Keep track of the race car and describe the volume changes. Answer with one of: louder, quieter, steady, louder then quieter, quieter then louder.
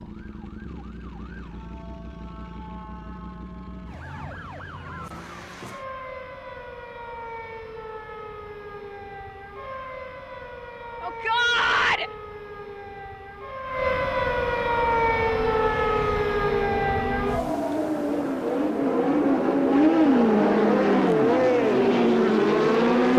louder.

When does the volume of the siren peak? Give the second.
15 s.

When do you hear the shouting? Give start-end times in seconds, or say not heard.
11.0-12.1.